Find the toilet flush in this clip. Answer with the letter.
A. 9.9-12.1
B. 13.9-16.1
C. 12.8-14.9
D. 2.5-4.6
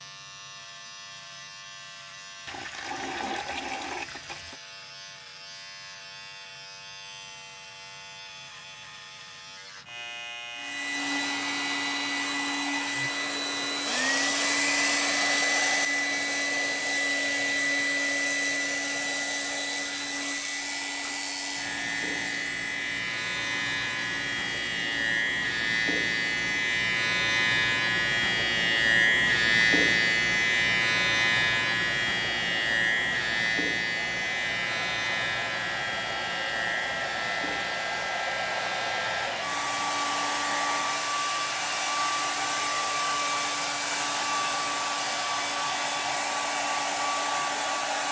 D.